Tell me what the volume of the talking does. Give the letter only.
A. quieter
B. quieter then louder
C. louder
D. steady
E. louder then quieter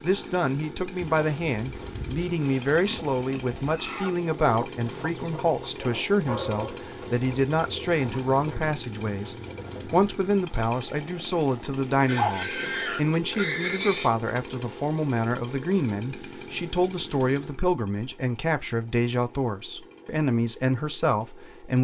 D.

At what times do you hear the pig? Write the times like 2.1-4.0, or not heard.
1.0-3.5, 12.1-14.1.